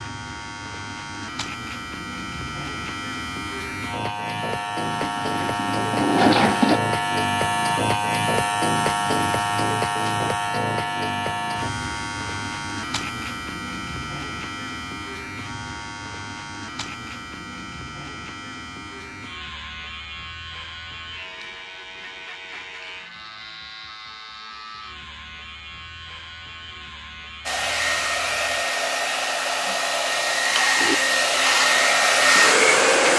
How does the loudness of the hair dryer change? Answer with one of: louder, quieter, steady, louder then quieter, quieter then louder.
louder.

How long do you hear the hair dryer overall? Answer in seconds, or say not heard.
6 s.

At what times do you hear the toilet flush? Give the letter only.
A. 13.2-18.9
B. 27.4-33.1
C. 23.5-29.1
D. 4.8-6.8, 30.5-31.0
D.